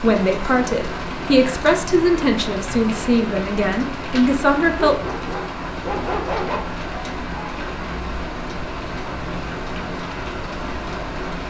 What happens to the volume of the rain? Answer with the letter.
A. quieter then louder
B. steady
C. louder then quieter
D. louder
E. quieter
B.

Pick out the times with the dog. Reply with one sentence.
You can hear the dog from 4.8 to 6.6 s.